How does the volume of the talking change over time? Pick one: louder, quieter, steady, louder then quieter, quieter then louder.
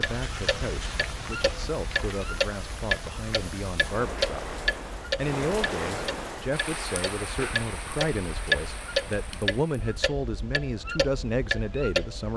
louder.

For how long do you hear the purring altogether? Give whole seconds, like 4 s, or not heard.
not heard.